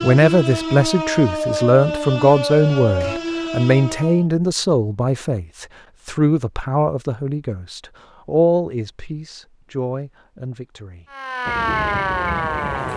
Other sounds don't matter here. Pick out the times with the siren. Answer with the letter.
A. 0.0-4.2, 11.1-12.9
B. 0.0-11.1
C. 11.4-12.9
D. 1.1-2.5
A.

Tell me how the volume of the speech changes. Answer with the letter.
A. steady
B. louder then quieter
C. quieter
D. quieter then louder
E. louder
C.